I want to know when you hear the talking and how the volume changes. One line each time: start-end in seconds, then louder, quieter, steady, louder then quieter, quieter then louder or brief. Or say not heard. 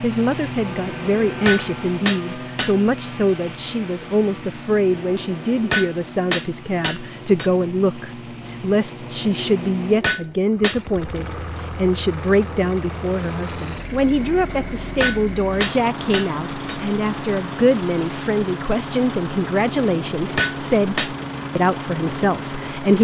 0.0-22.9 steady.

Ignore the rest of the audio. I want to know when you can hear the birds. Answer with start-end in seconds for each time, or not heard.
not heard.